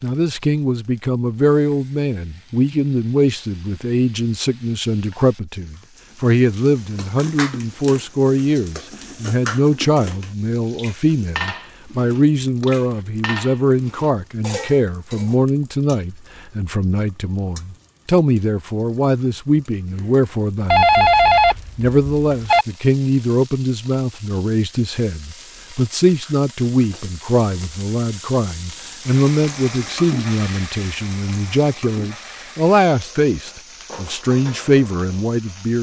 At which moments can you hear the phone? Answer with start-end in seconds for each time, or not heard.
20.7-22.6.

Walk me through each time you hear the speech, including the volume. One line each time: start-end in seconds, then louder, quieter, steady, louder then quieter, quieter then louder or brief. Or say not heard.
0.0-35.7 steady.